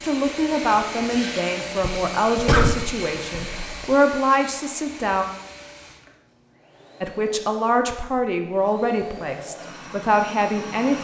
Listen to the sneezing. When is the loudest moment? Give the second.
3 s.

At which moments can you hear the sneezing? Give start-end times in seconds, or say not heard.
1.8-3.9.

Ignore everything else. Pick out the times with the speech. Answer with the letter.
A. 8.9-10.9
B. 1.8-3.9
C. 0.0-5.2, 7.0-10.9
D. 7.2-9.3
C.